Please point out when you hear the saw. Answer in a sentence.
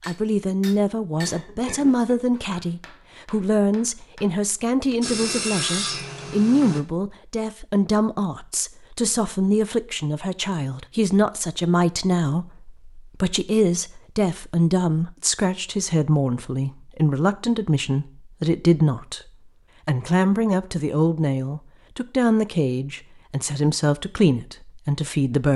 You can hear the saw from 5.0 to 6.8 s.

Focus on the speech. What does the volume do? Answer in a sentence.
The loudness of the speech stays about the same.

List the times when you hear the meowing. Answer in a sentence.
You can't hear the meowing here.